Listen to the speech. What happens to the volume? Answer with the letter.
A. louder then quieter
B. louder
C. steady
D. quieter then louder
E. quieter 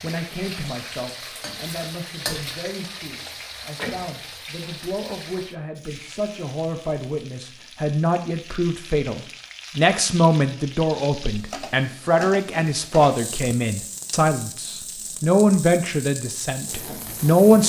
B.